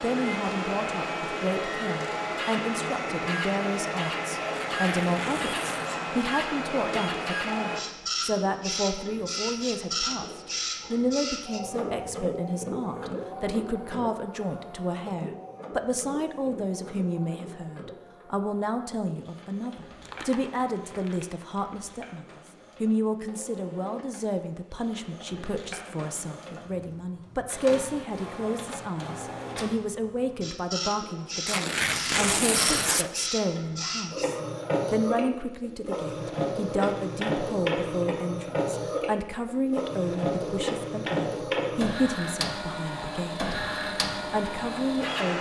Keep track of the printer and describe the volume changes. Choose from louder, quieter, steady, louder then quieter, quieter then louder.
quieter then louder.